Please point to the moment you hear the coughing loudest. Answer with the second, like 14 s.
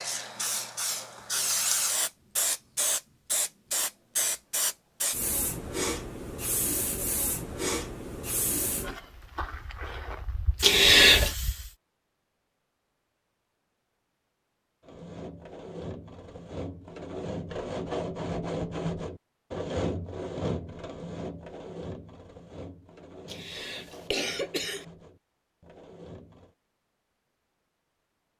11 s.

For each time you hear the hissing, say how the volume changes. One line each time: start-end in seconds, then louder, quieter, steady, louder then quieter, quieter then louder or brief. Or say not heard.
0.0-11.8 quieter.